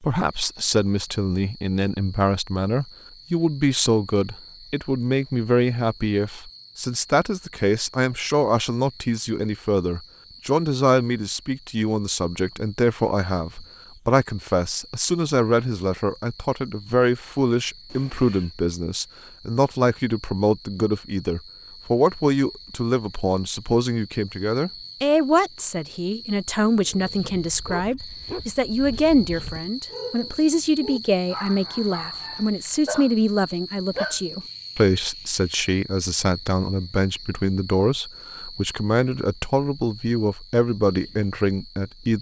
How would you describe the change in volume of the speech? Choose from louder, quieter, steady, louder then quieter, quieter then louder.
steady.